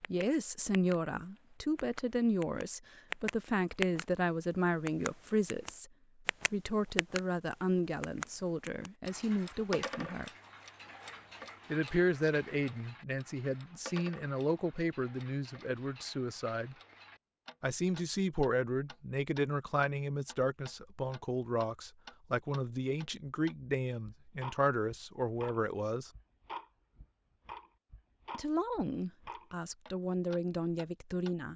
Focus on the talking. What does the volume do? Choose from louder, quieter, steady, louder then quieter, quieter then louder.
steady.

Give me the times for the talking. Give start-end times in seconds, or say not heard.
0.1-5.9, 6.5-10.3, 11.7-16.8, 17.6-26.1, 28.3-31.5.